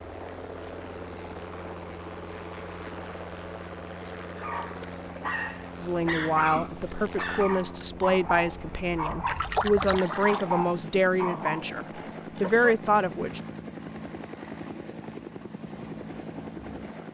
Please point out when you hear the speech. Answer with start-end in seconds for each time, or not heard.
5.8-13.4.